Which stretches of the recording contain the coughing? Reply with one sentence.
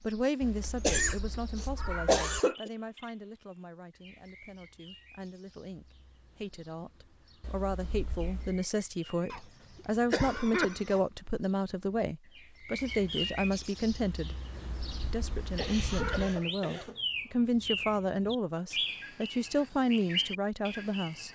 The coughing can be heard from 0.8 to 2.7 s, from 9.3 to 11.1 s and from 15.3 to 17.1 s.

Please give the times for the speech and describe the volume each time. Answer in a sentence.
The speech can be heard from 0.0 to 14.3 s, getting quieter then louder; and from 15.1 to 21.2 s, at a steady volume.